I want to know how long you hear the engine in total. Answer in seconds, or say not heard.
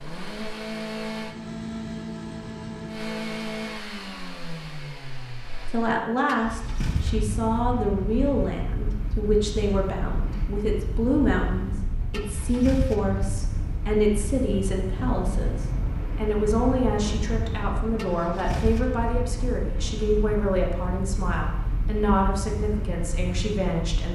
24 s.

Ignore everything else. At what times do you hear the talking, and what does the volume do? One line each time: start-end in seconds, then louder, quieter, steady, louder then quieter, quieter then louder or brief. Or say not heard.
5.7-24.1 steady.